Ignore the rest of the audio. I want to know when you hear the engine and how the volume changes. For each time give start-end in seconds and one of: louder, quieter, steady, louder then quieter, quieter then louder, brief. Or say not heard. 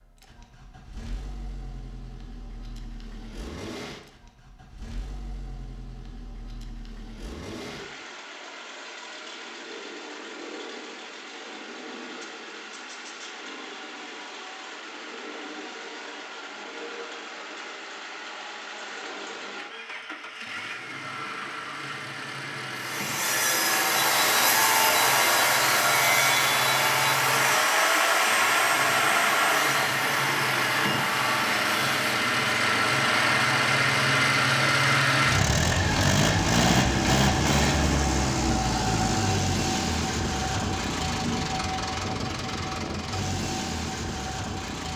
0.0-44.9 louder.